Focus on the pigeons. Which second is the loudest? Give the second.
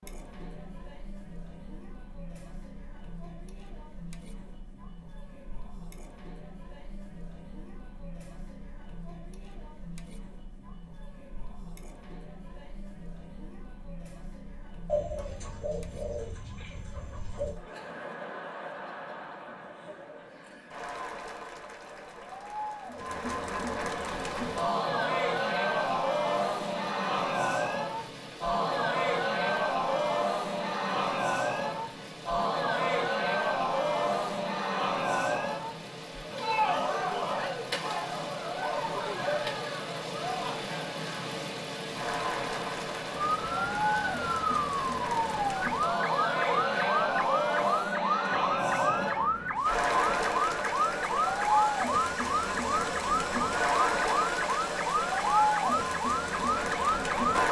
15 s.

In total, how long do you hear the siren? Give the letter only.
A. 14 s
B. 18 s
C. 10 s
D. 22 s
A.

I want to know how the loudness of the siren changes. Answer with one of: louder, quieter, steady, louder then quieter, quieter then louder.
steady.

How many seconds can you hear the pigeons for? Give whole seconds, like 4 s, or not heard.
3 s.